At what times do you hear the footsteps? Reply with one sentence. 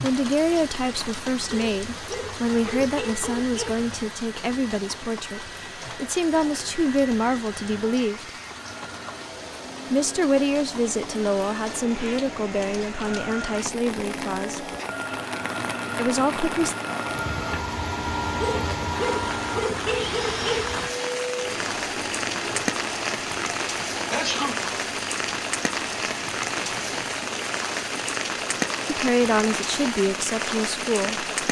You can't hear the footsteps here.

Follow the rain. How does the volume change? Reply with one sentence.
The loudness of the rain goes up.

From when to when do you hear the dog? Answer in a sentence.
The dog can be heard from 1.5 to 3.9 s and from 18.4 to 20.8 s.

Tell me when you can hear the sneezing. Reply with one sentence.
You can hear the sneezing from 24.1 to 24.7 s.